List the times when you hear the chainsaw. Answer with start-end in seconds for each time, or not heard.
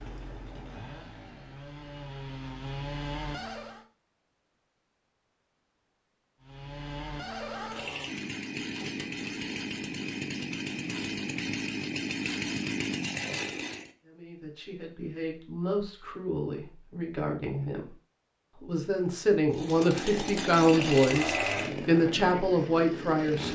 0.0-3.9, 6.4-13.9, 19.5-23.5.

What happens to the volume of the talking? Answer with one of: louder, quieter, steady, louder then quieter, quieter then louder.
louder.